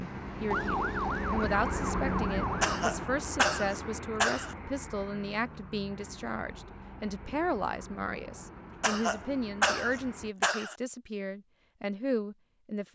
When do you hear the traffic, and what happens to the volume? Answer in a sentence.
You can hear the traffic from 0.0 to 10.3 s, getting quieter.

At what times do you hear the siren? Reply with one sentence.
You can hear the siren from 0.0 to 2.8 s.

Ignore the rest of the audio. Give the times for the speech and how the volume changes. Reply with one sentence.
The speech can be heard from 0.0 to 12.9 s, at a steady volume.